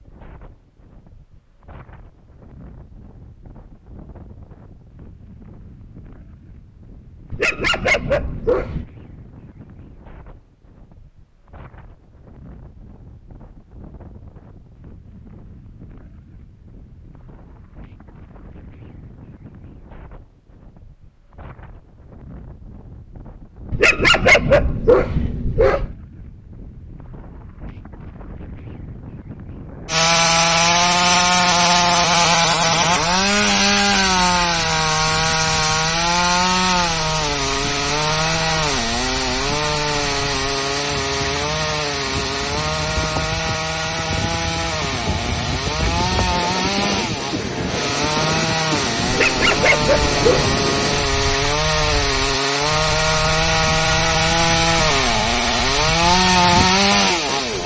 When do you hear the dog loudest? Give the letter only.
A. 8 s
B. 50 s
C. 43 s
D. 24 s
D.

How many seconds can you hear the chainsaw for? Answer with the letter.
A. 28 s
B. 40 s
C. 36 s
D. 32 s
A.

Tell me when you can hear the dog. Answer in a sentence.
The dog can be heard from 7.3 to 8.8 s, from 23.7 to 25.9 s and from 49.0 to 50.5 s.